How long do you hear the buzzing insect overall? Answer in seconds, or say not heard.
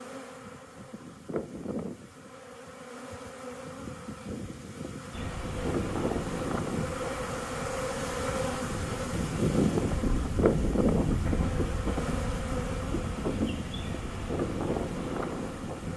16 s.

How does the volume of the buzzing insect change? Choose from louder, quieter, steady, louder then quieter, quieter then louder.
louder then quieter.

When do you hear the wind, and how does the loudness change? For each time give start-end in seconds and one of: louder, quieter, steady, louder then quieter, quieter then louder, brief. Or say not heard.
5.1-15.9 quieter then louder.